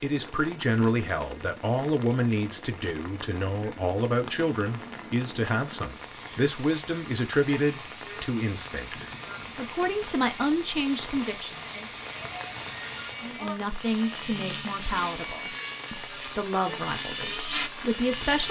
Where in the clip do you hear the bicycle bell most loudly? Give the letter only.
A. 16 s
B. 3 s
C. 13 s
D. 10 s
C.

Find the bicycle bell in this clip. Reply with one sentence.
The bicycle bell can be heard from 11.7 to 13.6 s.